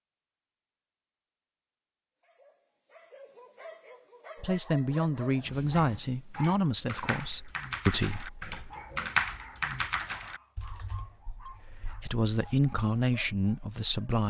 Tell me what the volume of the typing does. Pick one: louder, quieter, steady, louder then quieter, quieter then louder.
louder then quieter.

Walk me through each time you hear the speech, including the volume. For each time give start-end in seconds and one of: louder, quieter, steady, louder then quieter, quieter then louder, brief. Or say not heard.
4.4-8.6 quieter then louder
11.7-14.2 brief.